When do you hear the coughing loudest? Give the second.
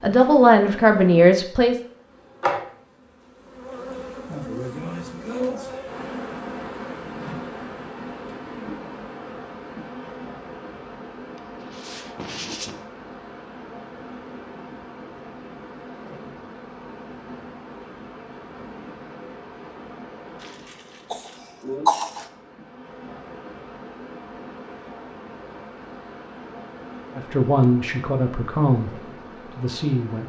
22 s.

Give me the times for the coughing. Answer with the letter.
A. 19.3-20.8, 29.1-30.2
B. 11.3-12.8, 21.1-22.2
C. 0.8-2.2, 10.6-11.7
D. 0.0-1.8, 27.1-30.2
B.